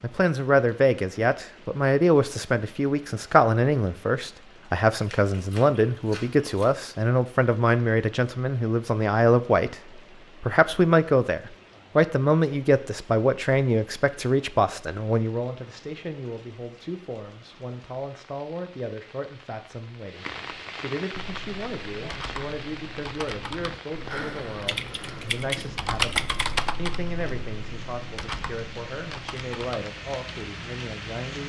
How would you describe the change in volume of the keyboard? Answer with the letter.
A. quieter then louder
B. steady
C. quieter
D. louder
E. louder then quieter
E.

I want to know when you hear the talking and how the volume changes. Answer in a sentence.
You can hear the talking from 0.0 to 31.4 s, getting quieter.